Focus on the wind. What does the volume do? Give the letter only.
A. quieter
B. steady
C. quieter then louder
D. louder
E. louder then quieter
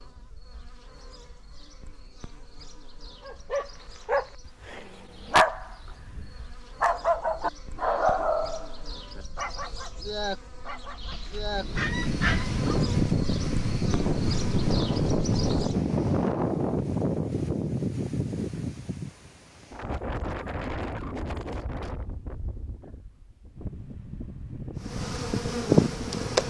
A.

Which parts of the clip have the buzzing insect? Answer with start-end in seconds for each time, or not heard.
0.0-15.8, 24.8-26.4.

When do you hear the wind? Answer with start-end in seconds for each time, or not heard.
11.5-26.4.